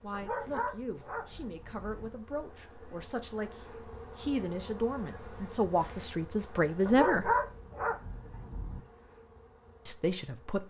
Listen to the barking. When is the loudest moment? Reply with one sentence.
The volume of the barking peaks at 7 seconds.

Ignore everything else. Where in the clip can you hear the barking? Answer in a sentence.
The barking can be heard from 0.1 to 2.1 s and from 6.8 to 8.8 s.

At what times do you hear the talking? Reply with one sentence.
The talking can be heard from 0.0 to 7.3 s and from 9.8 to 10.6 s.